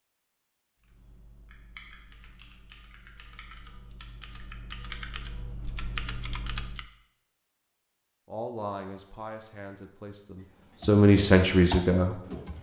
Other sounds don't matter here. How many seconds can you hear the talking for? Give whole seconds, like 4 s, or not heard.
4 s.